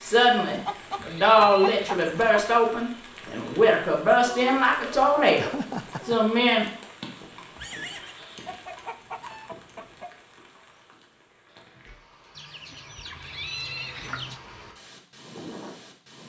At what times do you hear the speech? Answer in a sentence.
You can hear the speech from 0.0 to 6.7 s.